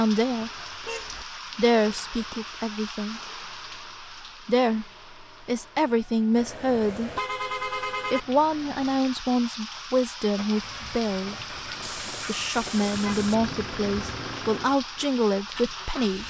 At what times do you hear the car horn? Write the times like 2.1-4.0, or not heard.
0.8-1.2, 6.3-8.2, 11.8-13.4.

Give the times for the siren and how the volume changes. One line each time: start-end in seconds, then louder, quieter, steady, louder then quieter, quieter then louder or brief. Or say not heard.
not heard.